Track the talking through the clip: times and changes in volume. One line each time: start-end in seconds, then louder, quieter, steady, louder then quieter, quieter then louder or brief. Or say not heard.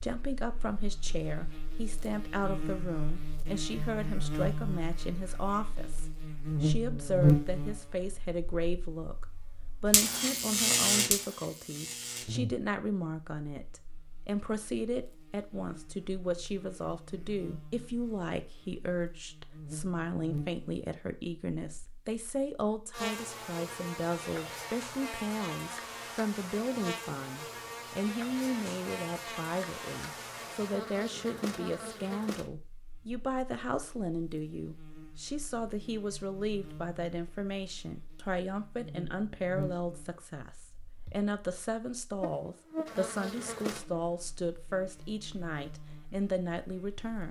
0.0-47.2 steady.